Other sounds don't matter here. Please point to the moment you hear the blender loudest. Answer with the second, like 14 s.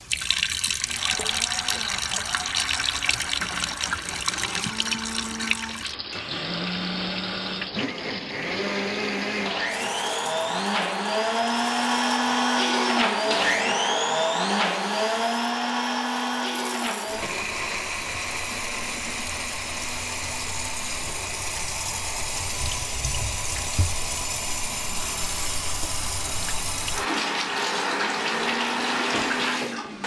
13 s.